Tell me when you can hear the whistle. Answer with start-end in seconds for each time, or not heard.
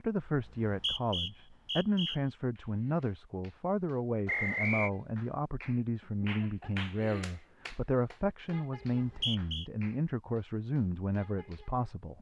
0.4-2.2, 4.2-4.9, 8.8-9.7.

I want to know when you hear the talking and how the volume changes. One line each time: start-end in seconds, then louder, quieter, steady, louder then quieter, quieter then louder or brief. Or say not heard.
0.0-12.1 steady.